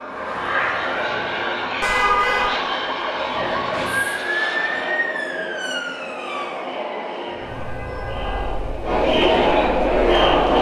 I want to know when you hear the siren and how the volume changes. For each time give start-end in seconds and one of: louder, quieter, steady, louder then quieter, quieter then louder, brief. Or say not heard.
0.0-10.5 louder then quieter.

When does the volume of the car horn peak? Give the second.
2 s.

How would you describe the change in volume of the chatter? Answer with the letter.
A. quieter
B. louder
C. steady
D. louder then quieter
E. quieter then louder
B.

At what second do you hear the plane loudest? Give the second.
1 s.